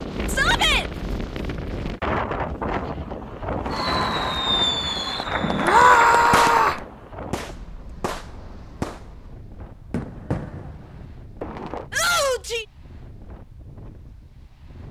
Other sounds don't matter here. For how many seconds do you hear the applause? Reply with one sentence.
The applause can be heard for 3 seconds in total.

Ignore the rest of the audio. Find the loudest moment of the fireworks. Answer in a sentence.
The volume of the fireworks peaks at 5 seconds.